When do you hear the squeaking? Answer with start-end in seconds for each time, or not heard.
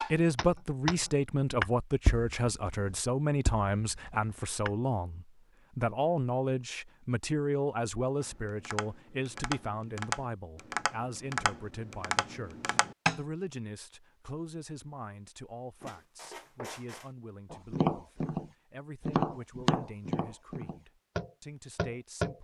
15.8-17.1.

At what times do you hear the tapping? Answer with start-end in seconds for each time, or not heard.
0.0-4.8, 8.2-13.2, 17.5-18.4, 19.1-22.3.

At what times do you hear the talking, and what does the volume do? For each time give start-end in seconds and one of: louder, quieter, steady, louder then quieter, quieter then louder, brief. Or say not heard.
0.1-22.3 quieter.